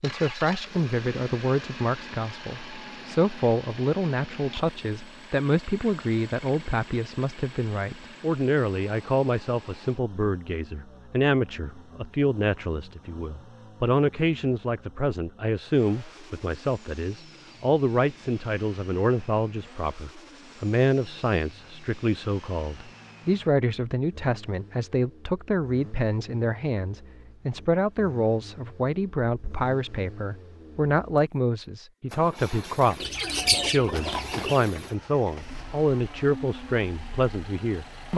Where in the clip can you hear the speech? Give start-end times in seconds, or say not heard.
0.0-38.1.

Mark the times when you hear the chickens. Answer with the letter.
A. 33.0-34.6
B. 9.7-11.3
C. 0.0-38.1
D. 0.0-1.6
A.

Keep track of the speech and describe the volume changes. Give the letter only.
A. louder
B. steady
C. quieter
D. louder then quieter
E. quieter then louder
B.